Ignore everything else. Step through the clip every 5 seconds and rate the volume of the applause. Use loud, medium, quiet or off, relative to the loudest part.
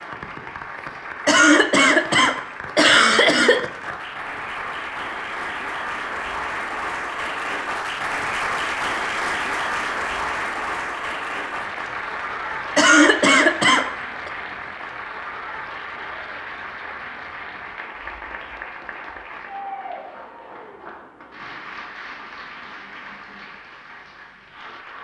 medium, loud, loud, medium, quiet.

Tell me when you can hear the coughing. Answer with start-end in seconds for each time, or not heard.
1.2-3.6, 12.8-14.3.